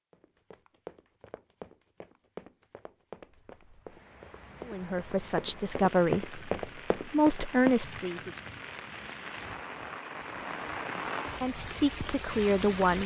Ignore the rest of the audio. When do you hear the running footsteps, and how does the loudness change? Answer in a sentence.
You can hear the running footsteps from 0.1 to 7.8 s, getting louder.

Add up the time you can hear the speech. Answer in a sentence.
The speech can be heard for 5 seconds in total.